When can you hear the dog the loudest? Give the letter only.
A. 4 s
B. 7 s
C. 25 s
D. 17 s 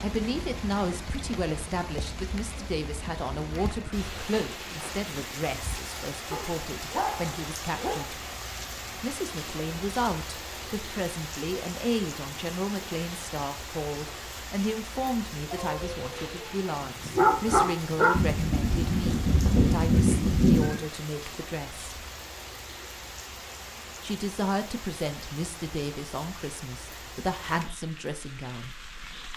D.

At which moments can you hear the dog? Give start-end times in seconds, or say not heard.
6.3-8.1, 15.5-18.2.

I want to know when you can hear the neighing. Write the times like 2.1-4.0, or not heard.
18.1-20.8.